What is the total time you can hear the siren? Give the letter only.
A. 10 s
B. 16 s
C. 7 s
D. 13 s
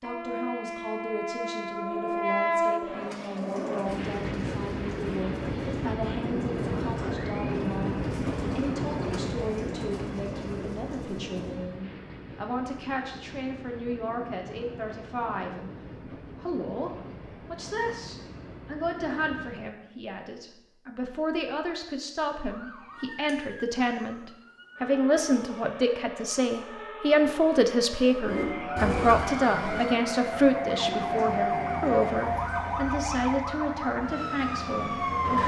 D.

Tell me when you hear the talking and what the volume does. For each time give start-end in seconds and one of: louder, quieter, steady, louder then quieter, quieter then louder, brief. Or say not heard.
0.0-35.4 louder.